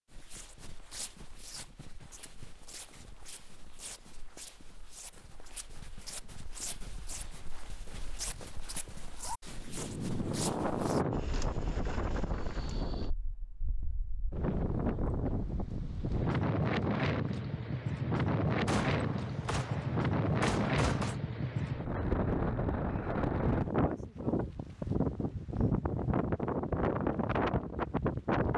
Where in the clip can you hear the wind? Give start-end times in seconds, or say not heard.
9.6-28.5.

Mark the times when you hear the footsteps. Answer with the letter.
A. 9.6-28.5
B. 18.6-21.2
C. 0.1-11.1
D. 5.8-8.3
C.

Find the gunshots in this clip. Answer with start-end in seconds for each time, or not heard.
18.6-21.2.